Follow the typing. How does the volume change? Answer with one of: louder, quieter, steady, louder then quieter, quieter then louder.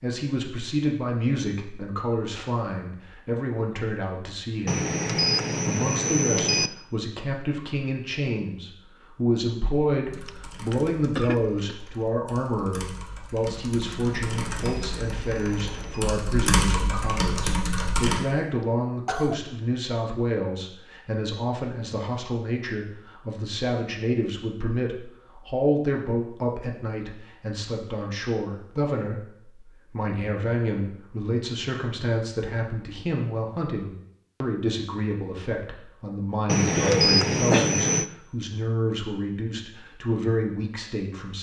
louder.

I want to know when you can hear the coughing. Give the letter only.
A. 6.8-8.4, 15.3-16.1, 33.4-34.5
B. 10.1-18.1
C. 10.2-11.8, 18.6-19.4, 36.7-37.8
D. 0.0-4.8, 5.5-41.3
C.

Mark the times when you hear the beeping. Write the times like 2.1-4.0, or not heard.
4.7-6.7, 14.1-16.1, 36.5-38.1.